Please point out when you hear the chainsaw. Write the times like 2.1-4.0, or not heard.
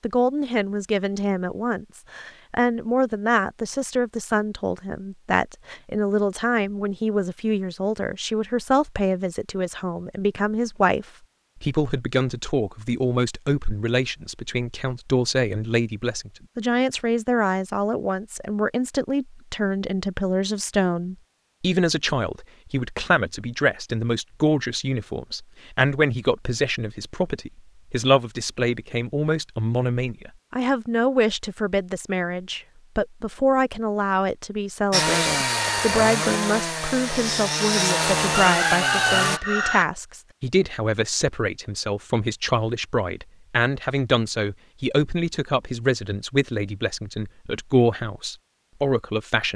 34.9-39.4.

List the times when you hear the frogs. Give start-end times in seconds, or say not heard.
not heard.